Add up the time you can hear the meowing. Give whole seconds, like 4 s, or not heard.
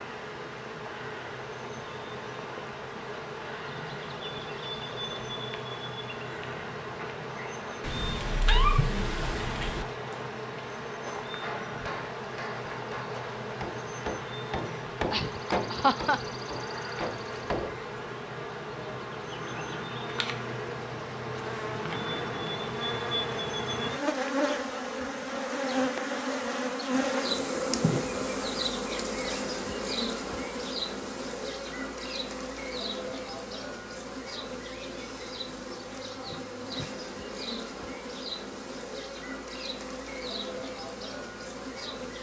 2 s.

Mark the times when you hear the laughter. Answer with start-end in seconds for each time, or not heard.
15.1-16.2.